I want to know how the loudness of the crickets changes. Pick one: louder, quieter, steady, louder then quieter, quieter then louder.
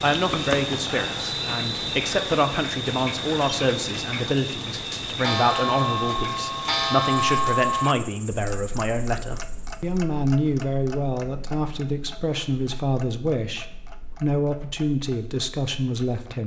quieter.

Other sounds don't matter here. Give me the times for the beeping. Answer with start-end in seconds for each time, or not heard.
1.1-1.9.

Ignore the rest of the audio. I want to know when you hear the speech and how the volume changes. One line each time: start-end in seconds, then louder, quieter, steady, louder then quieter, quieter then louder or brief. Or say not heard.
0.0-16.4 steady.